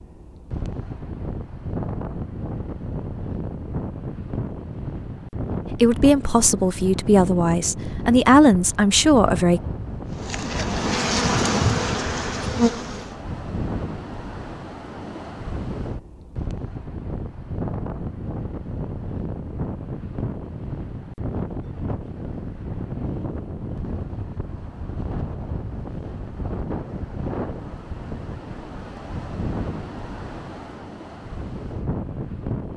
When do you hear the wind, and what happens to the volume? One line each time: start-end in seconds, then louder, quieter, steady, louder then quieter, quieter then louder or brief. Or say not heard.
0.0-32.7 steady.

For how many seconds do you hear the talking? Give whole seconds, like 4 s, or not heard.
4 s.